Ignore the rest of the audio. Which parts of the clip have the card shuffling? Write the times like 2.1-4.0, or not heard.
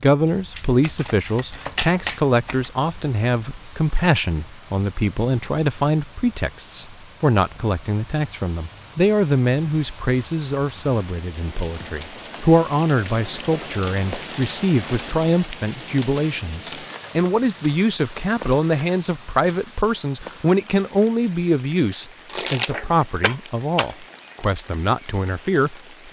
0.6-2.7, 22.2-23.9.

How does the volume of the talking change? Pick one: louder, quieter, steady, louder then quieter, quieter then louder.
steady.